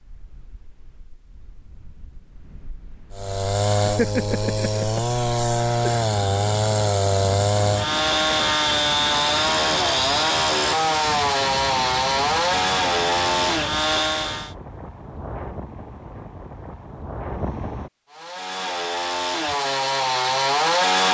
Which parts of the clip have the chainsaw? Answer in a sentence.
The chainsaw can be heard from 3.1 to 14.6 s and from 18.1 to 21.1 s.